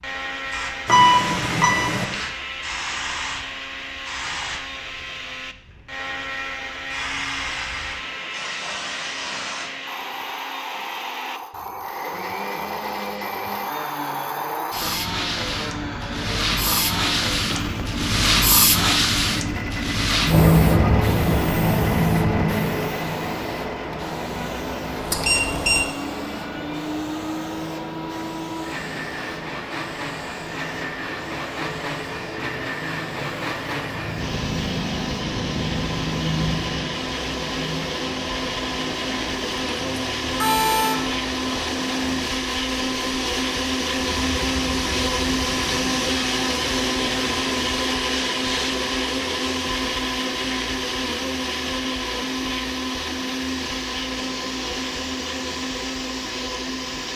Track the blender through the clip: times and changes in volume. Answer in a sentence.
You can hear the blender from 0.0 to 57.1 s, getting louder.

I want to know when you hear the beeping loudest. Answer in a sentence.
The loudest moment of the beeping is at 1 second.